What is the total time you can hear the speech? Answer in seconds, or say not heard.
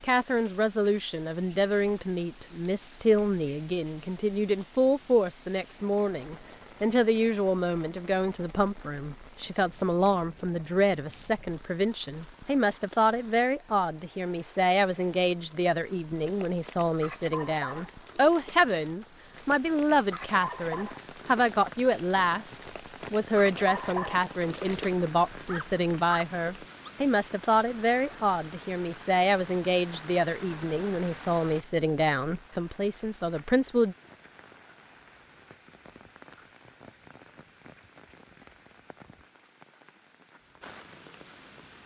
34 s.